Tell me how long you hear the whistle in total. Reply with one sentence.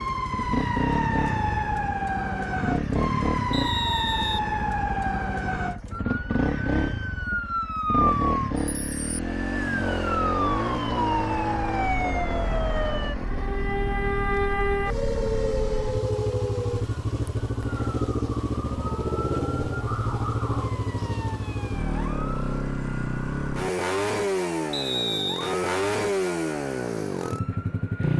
You can hear the whistle for 2 seconds altogether.